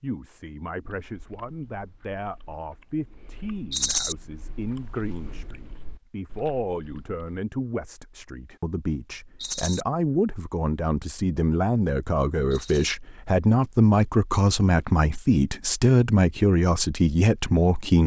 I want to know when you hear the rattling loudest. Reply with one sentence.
The loudest moment of the rattling is at 4 seconds.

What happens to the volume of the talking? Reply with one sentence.
The loudness of the talking goes up.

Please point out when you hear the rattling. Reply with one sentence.
The rattling can be heard from 3.7 to 4.2 s, from 9.4 to 9.8 s and from 12.5 to 12.9 s.